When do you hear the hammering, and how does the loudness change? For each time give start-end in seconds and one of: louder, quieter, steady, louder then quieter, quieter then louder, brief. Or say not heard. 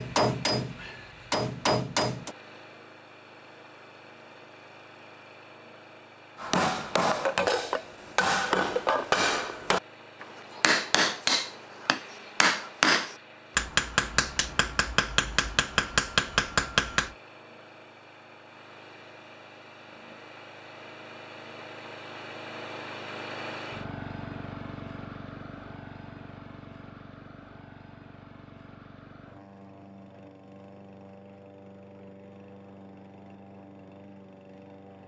0.0-2.4 brief
6.3-17.1 steady.